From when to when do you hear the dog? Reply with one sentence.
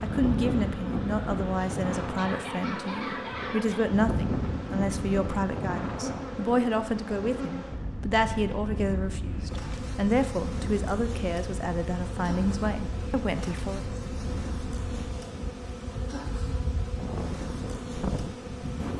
The dog can be heard from 2.0 to 3.9 s.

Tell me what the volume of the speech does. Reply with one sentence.
The volume of the speech stays about the same.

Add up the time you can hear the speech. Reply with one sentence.
The speech can be heard for 14 seconds in total.